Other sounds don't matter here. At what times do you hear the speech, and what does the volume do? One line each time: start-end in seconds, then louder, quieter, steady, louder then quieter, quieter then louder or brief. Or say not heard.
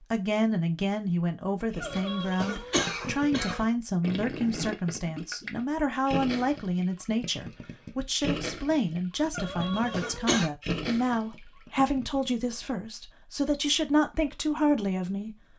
0.0-15.4 steady.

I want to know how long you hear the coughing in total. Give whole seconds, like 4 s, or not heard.
3 s.